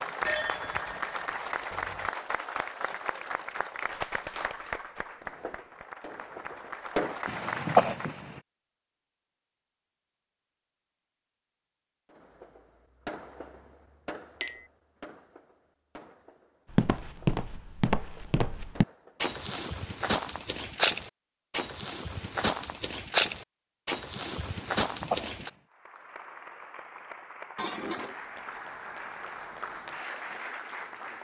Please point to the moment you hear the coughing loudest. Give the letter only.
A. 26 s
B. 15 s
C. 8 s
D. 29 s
C.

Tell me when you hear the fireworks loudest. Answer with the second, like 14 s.
7 s.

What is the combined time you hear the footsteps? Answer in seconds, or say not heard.
9 s.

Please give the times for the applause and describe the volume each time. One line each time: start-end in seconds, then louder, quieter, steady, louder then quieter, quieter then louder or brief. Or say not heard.
0.0-8.2 quieter then louder
25.7-31.2 louder.